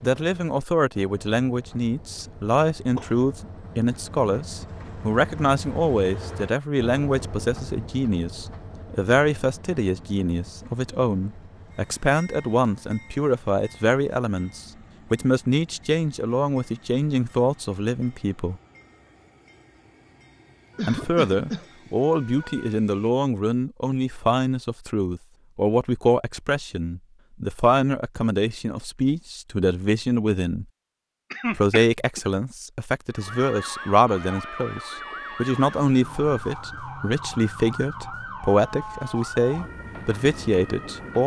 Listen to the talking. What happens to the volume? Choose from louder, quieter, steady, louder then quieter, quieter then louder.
steady.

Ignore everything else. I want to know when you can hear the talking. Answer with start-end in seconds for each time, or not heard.
0.0-18.6, 20.8-30.6, 31.5-41.2.